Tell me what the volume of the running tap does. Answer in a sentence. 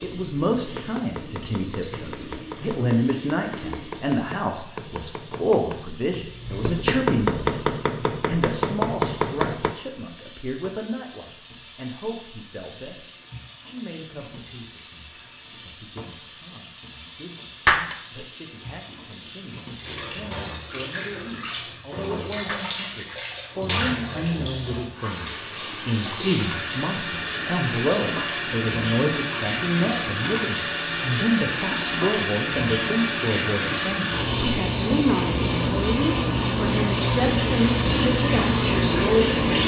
The loudness of the running tap goes up.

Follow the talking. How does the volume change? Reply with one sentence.
The loudness of the talking goes down, then up.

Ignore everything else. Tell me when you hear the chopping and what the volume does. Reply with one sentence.
The chopping can be heard from 0.0 to 9.8 s, getting louder.